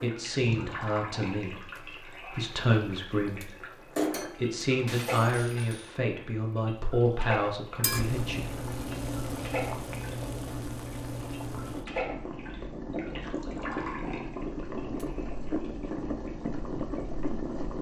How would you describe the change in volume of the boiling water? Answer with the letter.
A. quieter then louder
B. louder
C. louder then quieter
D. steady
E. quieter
B.